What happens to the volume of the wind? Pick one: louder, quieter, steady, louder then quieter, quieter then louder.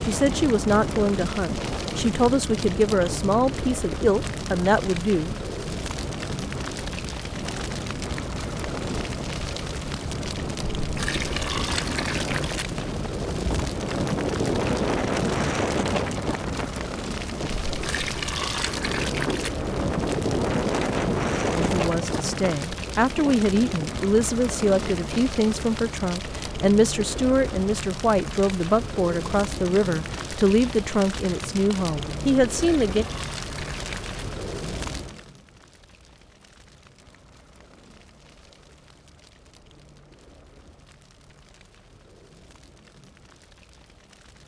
louder.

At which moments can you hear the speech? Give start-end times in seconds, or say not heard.
0.0-5.3, 21.6-33.0.